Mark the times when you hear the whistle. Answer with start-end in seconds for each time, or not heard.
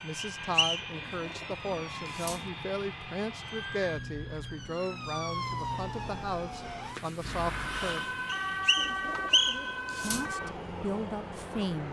0.3-0.9, 8.2-9.8.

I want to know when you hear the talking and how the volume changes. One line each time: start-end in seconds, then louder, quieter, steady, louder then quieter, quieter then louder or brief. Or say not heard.
0.0-8.2 steady
10.0-11.8 brief.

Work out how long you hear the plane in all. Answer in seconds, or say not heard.
12 s.